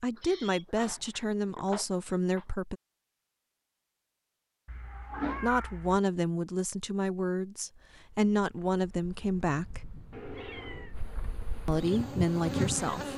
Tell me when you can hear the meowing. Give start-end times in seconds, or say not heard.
0.1-2.5, 4.7-6.0, 10.1-10.9.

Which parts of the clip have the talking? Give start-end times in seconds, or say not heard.
0.0-2.8, 5.4-9.8, 11.7-13.1.